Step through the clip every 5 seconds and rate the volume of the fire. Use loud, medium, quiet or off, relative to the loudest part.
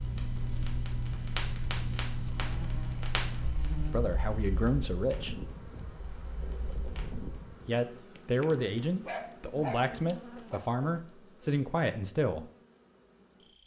loud, quiet, off.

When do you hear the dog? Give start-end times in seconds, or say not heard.
8.6-10.6.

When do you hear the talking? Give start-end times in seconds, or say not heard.
3.9-5.4, 7.7-12.5.